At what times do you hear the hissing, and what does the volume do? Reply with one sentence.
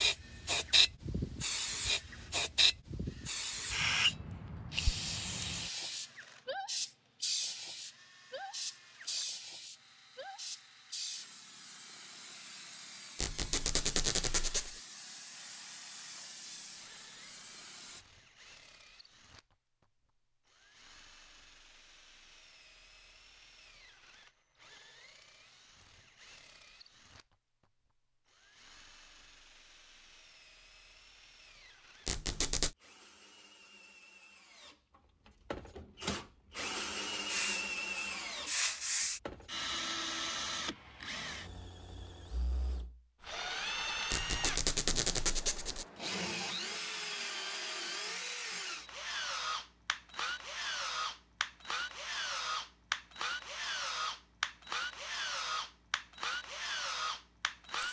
You can hear the hissing from 0.0 to 18.1 s, getting quieter; and briefly from 37.2 to 39.2 s.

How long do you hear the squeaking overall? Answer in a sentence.
You can hear the squeaking for 4 seconds altogether.